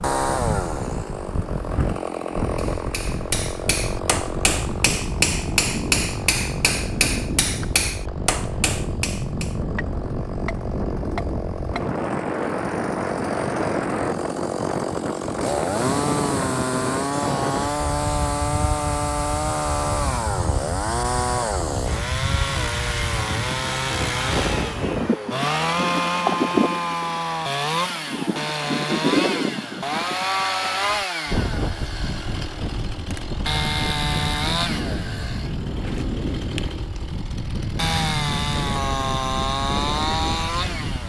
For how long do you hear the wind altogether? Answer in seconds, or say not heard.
41 s.